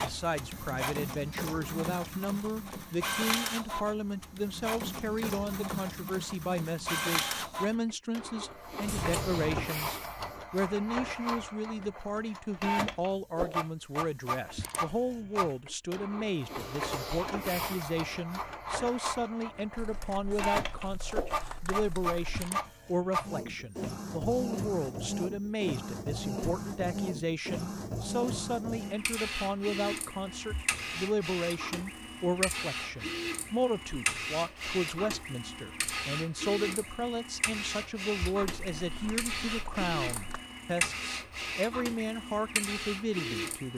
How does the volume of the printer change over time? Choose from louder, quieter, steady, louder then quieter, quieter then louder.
steady.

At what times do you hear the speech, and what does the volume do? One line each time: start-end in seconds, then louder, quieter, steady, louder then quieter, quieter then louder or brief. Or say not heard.
0.0-43.7 steady.